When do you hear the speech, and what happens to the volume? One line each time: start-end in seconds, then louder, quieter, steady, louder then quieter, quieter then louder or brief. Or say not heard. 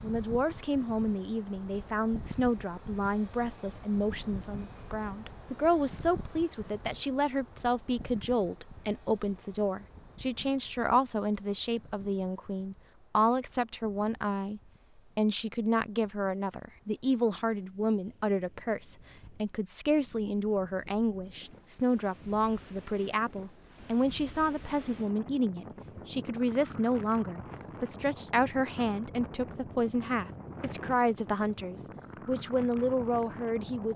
0.0-33.9 steady.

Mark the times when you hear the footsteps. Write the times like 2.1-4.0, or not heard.
not heard.